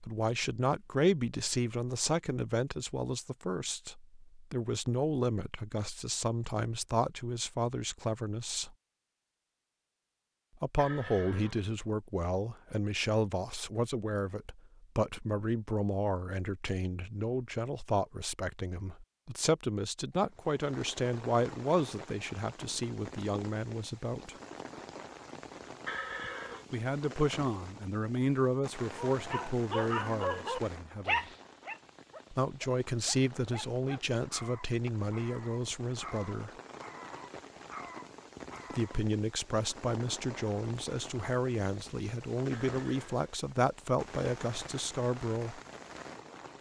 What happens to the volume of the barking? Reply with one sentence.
The volume of the barking goes down.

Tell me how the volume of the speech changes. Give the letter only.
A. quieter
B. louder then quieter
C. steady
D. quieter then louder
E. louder
C.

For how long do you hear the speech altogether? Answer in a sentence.
You can hear the speech for 38 seconds altogether.